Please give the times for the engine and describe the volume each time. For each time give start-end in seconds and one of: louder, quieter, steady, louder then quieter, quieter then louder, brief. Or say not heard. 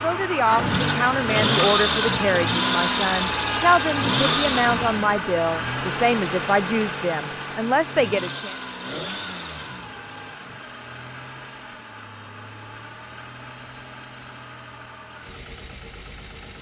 0.0-16.5 quieter.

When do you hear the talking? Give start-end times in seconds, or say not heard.
0.0-8.6.